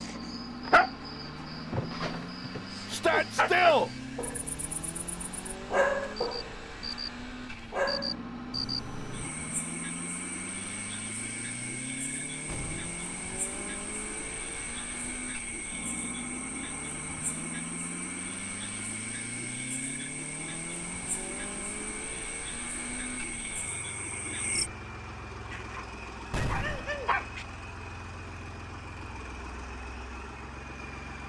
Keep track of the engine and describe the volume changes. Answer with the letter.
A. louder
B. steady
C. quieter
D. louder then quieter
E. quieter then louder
B.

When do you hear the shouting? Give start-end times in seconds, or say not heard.
2.9-3.9.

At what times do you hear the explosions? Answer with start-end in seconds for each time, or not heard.
12.4-12.9, 26.3-26.9.